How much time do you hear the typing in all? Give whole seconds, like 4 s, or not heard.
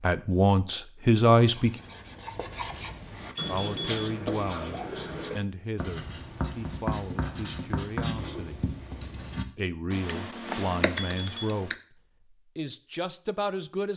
2 s.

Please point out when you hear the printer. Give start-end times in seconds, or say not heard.
not heard.